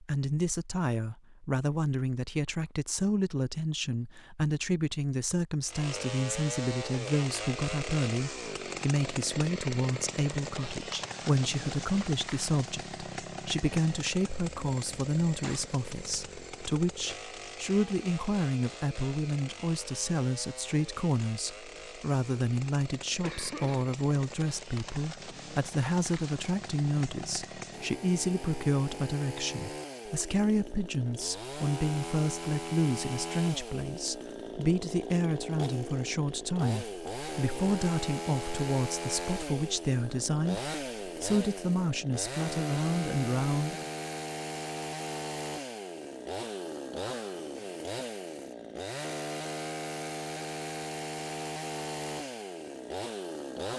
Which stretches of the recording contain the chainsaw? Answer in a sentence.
The chainsaw can be heard from 5.7 to 53.7 s.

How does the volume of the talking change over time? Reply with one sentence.
The volume of the talking stays about the same.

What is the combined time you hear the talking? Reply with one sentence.
You can hear the talking for 44 seconds altogether.